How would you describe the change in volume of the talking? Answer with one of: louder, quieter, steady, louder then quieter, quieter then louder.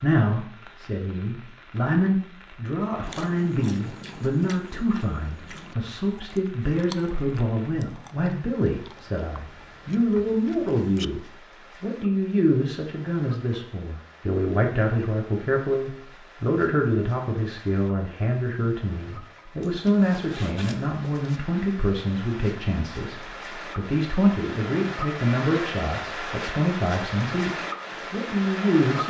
steady.